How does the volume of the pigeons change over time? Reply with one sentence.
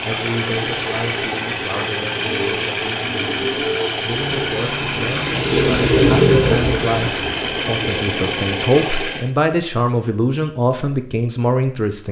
The loudness of the pigeons goes up, then down.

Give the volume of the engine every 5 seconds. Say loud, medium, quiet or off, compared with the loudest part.
loud, loud, off.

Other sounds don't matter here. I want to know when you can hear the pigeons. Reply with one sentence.
You can hear the pigeons from 2.1 to 8.8 s.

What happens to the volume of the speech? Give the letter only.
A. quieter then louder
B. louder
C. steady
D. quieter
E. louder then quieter
B.